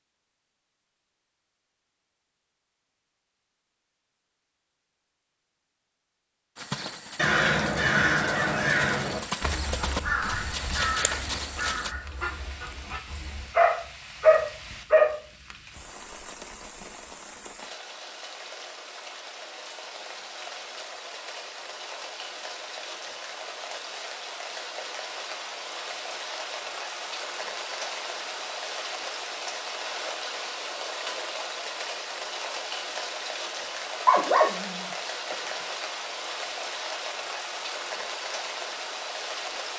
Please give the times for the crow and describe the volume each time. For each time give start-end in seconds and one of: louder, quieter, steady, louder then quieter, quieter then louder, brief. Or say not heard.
7.2-13.5 quieter.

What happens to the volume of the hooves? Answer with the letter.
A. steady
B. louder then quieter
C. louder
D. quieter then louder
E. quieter
C.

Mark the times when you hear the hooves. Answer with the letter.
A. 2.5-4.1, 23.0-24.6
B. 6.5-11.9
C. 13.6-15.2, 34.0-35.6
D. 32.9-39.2
B.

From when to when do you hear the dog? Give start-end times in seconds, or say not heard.
13.6-15.2, 34.0-35.6.